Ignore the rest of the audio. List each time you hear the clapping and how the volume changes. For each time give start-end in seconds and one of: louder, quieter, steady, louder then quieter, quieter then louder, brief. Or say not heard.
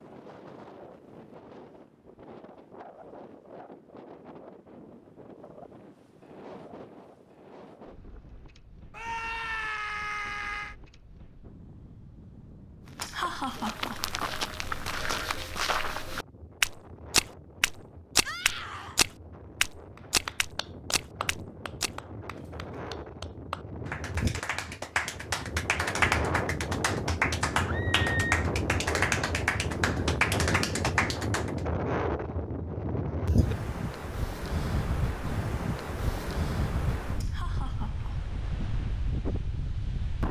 19.9-31.6 louder.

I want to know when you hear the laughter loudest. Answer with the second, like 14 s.
13 s.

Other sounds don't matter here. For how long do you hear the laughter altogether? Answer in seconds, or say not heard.
2 s.